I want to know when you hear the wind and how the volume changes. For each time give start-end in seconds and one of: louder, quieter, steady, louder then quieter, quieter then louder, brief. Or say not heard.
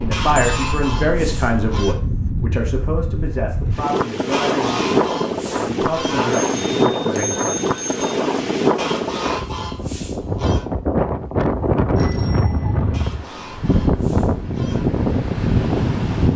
0.0-16.3 louder.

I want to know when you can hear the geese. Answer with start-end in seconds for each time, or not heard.
0.1-1.9, 4.3-6.3, 8.8-10.7, 12.9-14.8.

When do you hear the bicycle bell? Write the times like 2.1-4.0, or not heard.
0.3-0.9, 6.3-8.2, 11.9-12.9.